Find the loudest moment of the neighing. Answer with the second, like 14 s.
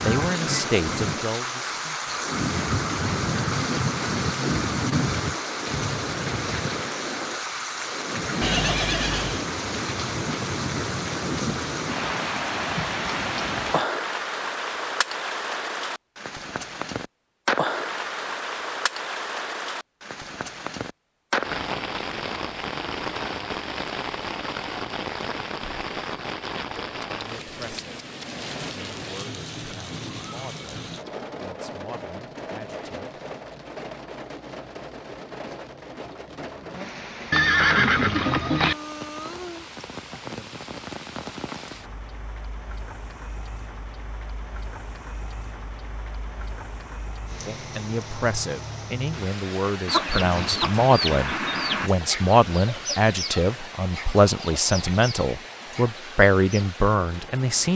38 s.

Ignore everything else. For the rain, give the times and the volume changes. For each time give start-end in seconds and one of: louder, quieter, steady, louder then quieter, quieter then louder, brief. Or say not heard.
0.0-57.7 quieter.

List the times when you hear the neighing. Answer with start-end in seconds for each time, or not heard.
8.4-9.4, 37.3-38.8.